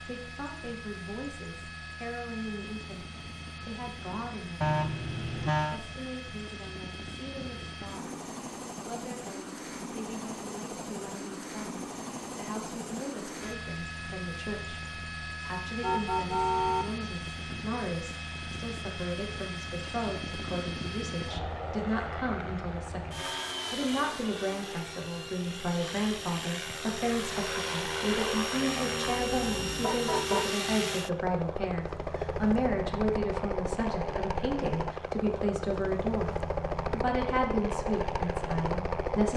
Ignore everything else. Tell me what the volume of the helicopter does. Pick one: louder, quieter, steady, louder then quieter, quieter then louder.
louder.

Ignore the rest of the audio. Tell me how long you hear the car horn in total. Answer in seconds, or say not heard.
4 s.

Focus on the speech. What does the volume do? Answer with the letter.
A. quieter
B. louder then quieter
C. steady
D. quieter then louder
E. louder
E.